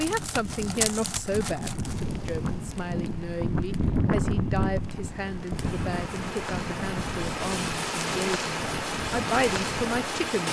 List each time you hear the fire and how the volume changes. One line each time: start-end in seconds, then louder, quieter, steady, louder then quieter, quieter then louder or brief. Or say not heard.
0.0-10.4 quieter then louder.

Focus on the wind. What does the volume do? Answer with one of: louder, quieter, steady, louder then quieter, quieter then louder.
louder then quieter.